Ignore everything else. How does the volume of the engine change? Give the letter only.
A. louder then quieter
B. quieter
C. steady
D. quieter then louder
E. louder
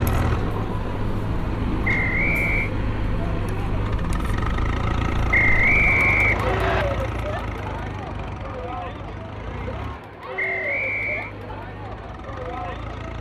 B.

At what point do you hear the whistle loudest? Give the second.
6 s.